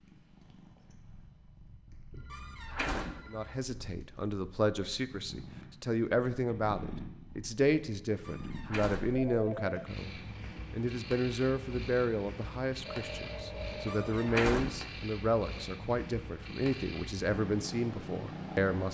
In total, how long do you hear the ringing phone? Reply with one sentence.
The ringing phone can be heard for 4 seconds in total.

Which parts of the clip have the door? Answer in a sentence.
You can hear the door from 2.3 to 3.2 s, from 8.2 to 9.2 s and from 13.8 to 14.8 s.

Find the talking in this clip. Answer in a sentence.
The talking can be heard from 3.3 to 18.8 s.